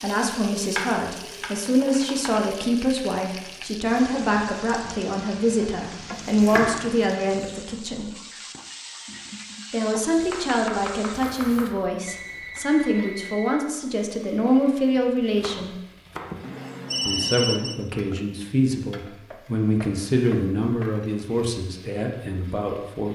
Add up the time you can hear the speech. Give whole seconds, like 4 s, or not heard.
20 s.